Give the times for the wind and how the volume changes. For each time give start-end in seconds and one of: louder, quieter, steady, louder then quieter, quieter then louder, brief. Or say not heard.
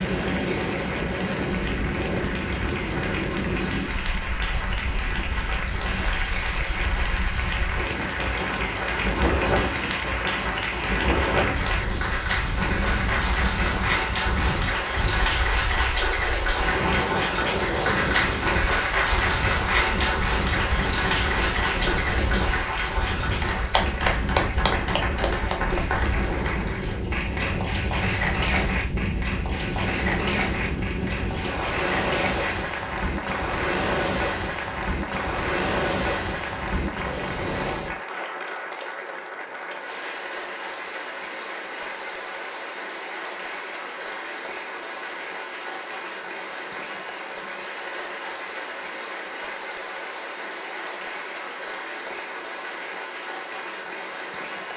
0.0-38.0 steady.